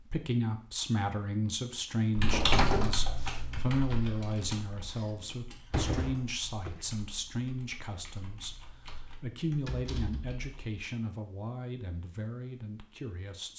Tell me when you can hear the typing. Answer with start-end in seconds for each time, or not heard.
2.1-10.7.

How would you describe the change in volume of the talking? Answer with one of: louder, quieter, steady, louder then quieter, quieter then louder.
quieter.